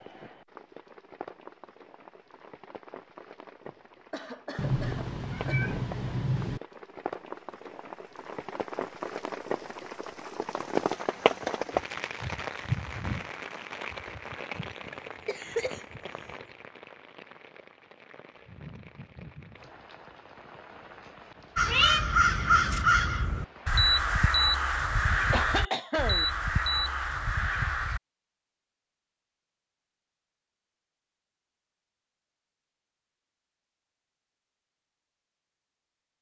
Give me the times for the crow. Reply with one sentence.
The crow can be heard from 21.6 to 28.0 s.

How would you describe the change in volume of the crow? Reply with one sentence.
The loudness of the crow goes down.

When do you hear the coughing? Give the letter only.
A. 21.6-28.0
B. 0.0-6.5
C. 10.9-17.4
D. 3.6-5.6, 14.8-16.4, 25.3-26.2
D.